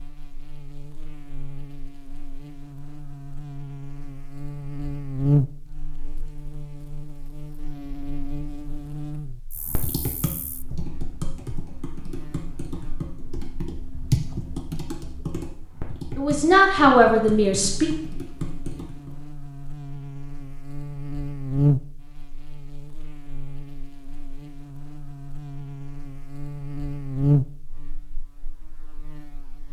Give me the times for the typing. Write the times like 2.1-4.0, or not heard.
9.6-19.1.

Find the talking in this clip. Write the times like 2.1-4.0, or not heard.
16.1-17.9.